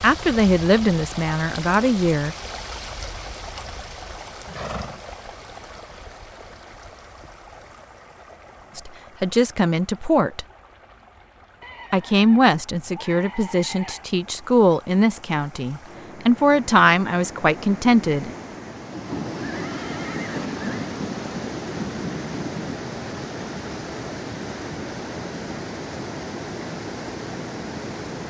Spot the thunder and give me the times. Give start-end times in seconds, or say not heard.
18.9-22.9.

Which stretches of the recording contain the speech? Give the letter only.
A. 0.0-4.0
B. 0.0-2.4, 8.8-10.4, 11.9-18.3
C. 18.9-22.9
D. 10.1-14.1
B.